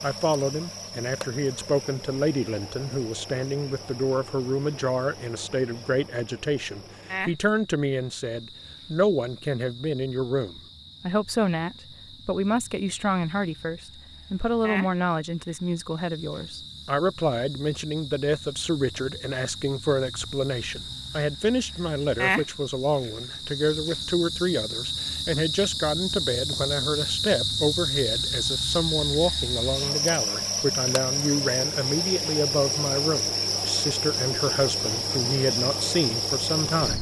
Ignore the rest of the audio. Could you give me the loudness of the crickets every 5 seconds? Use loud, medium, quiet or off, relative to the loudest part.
quiet, quiet, quiet, quiet, medium, loud, loud, loud.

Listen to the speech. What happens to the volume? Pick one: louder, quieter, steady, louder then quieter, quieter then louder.
steady.